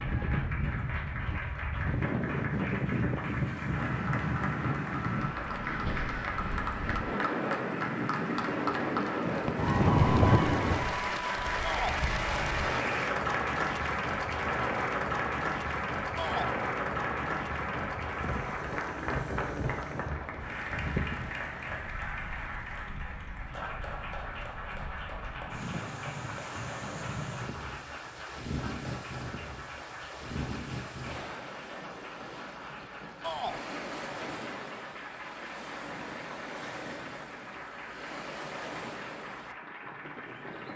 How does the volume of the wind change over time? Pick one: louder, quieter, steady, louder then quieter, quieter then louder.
quieter.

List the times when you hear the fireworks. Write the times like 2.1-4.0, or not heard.
9.2-10.9.